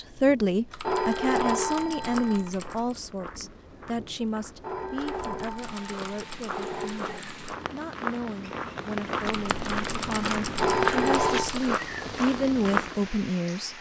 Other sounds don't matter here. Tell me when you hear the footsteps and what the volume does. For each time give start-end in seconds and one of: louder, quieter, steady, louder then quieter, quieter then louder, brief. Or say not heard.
1.6-13.1 louder.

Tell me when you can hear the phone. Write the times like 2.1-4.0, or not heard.
0.8-2.5, 4.6-7.2, 10.6-11.5.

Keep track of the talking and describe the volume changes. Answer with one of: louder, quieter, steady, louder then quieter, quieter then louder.
quieter then louder.